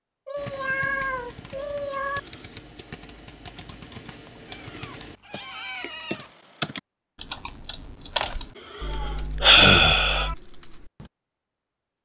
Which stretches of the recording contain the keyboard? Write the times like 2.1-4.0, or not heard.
0.3-11.1.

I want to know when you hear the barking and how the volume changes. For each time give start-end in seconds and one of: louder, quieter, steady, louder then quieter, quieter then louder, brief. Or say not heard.
not heard.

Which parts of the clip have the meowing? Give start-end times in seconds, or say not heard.
0.2-2.2, 4.7-6.3, 8.8-10.3.